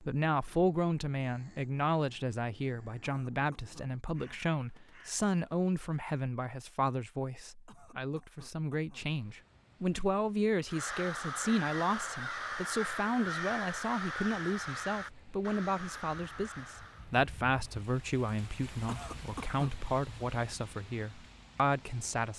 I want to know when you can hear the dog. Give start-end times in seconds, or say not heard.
not heard.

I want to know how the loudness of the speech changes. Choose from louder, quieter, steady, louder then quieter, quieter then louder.
steady.